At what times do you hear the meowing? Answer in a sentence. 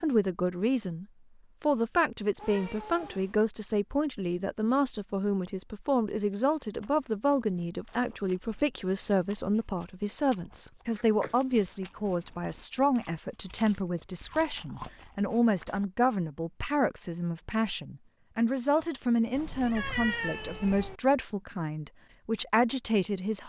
You can hear the meowing from 2.4 to 3.4 s, from 10.9 to 11.3 s and from 19.4 to 21.0 s.